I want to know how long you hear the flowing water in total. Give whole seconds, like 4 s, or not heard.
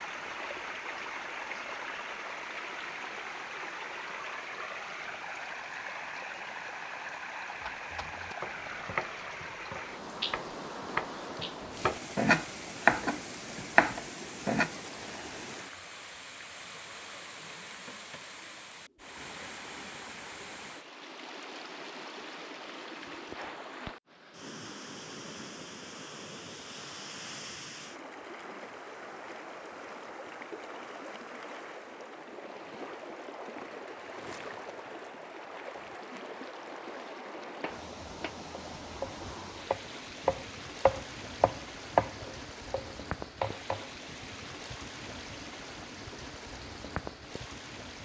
48 s.